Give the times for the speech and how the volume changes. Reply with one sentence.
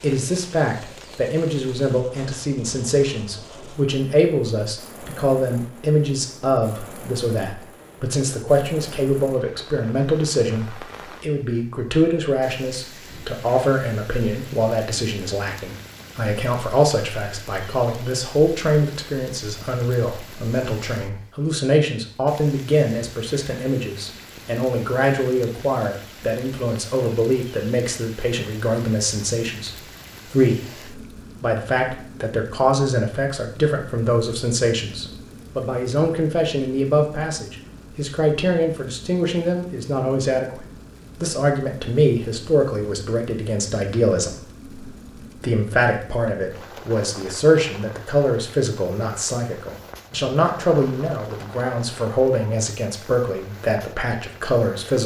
You can hear the speech from 0.0 to 55.0 s, at a steady volume.